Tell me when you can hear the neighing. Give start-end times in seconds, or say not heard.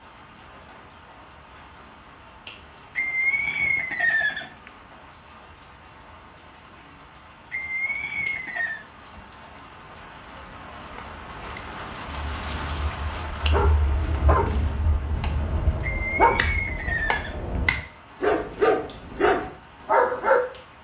3.0-4.7, 7.5-8.8, 15.8-17.6.